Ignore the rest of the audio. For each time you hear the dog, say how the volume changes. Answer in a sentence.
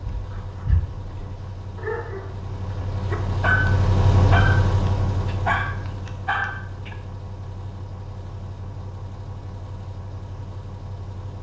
The dog can be heard from 0.1 to 7.0 s, getting louder.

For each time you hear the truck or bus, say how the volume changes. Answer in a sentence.
You can hear the truck or bus from 0.0 to 11.3 s, getting louder then quieter.